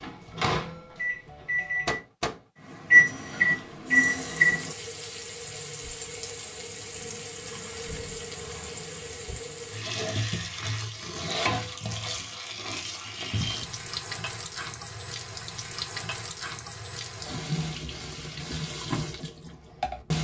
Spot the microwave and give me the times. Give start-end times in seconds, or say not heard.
0.0-4.8.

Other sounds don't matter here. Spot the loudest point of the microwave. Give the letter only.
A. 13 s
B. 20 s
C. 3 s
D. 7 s
C.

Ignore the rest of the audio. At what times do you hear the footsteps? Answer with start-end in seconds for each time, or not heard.
not heard.